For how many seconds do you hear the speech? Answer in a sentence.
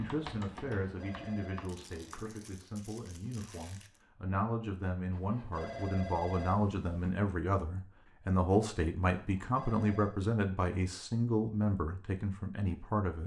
You can hear the speech for 13 seconds altogether.